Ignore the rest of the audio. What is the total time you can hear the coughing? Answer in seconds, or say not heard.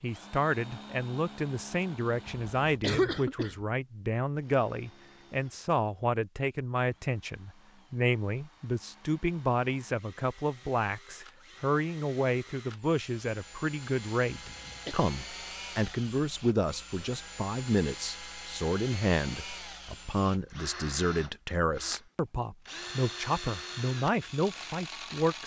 2 s.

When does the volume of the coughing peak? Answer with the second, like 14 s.
3 s.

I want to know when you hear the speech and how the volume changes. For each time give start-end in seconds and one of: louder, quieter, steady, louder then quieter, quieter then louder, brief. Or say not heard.
0.0-25.4 steady.